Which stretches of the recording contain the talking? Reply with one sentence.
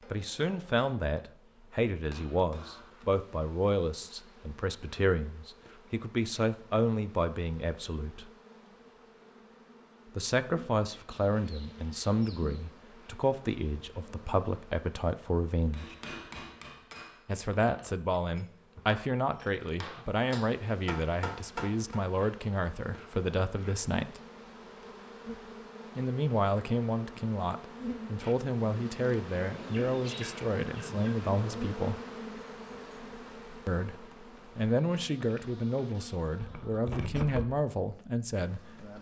The talking can be heard from 0.1 to 8.3 s, from 10.2 to 15.9 s, from 17.2 to 24.2 s, from 25.9 to 32.0 s and from 33.6 to 38.6 s.